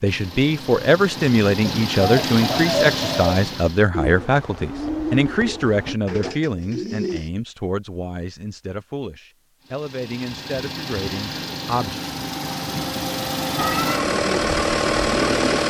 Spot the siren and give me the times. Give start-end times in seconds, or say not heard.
not heard.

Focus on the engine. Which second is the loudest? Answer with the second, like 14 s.
15 s.